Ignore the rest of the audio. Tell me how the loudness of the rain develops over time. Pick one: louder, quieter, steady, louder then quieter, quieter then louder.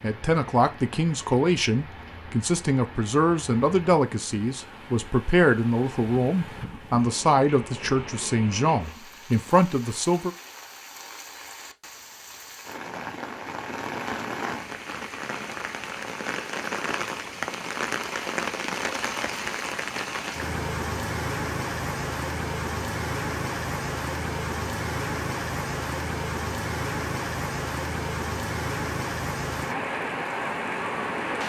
louder.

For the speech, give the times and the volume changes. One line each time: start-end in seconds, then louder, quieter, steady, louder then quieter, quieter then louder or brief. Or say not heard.
0.0-10.3 steady.